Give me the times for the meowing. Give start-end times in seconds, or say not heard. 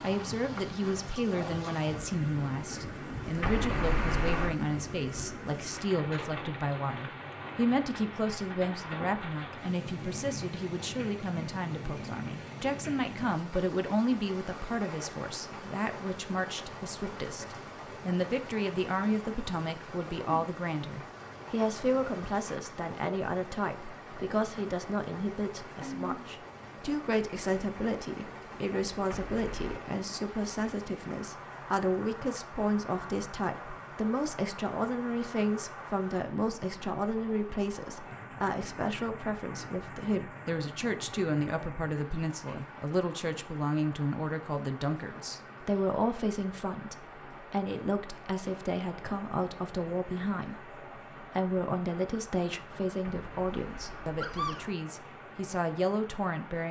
3.4-4.5, 29.1-29.8, 53.0-54.7.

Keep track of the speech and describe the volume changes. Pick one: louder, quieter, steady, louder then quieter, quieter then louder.
steady.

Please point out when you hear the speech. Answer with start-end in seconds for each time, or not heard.
0.0-56.6.